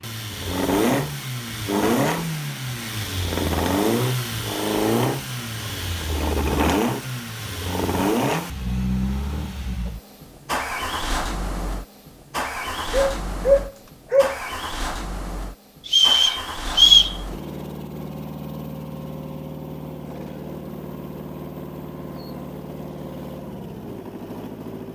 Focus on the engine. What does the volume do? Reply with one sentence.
The volume of the engine goes down.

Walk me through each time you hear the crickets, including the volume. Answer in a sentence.
You can't hear the crickets here.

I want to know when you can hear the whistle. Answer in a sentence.
The whistle can be heard from 15.8 to 17.1 s.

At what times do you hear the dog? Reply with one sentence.
The dog can be heard from 12.9 to 14.3 s.